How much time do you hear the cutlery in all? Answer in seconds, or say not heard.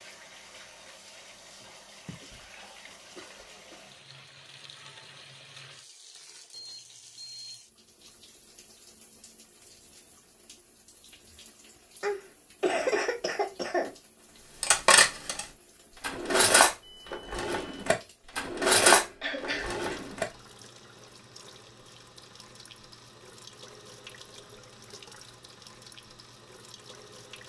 6 s.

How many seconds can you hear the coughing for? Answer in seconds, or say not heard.
5 s.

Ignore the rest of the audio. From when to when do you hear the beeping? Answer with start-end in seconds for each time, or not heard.
6.5-7.6.